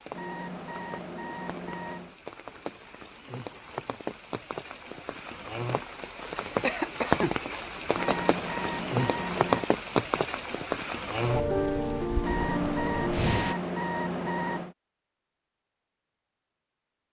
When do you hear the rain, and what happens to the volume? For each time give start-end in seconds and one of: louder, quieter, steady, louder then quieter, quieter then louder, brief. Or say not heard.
0.0-13.6 louder.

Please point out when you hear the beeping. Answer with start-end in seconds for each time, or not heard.
0.1-2.1, 8.0-9.7, 12.2-14.8.